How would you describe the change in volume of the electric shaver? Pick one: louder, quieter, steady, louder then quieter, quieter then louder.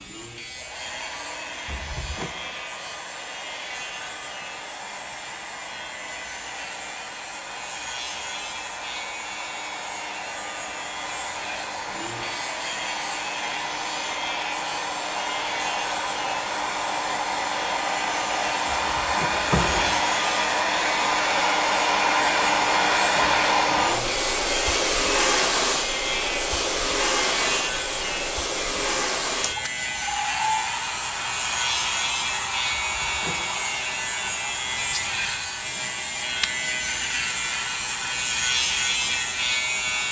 louder.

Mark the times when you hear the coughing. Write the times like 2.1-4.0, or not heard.
not heard.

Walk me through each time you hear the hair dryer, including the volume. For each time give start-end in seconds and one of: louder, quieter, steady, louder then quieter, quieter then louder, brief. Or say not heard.
0.0-40.0 louder then quieter.